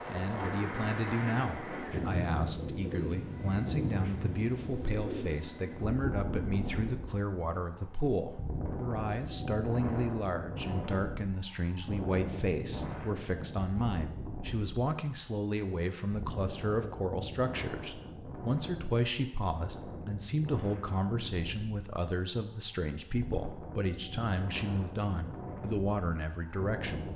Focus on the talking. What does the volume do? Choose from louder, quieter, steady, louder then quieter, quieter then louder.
steady.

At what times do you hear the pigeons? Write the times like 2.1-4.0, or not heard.
1.6-7.2.